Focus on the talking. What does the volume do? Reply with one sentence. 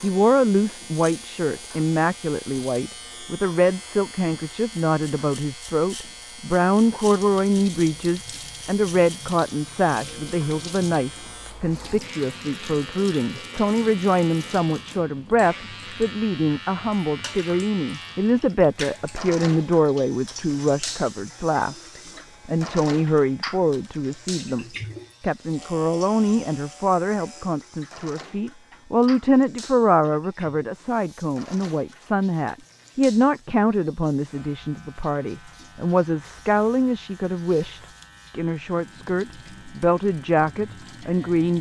The volume of the talking stays about the same.